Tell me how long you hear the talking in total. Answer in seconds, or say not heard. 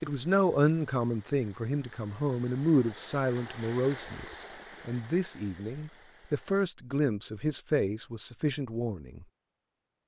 9 s.